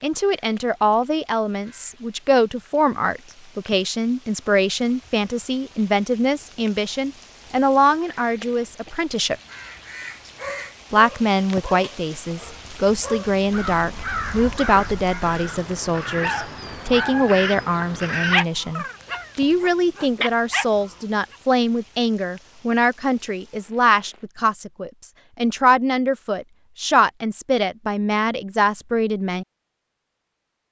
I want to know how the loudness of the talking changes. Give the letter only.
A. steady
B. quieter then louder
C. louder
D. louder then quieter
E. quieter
A.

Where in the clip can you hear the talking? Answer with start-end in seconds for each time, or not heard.
0.0-9.3, 10.9-29.4.